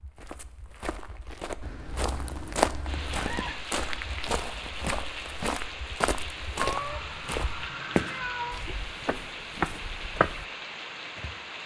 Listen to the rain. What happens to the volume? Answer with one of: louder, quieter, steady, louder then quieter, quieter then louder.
steady.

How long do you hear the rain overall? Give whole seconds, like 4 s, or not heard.
9 s.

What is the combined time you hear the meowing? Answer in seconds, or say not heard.
4 s.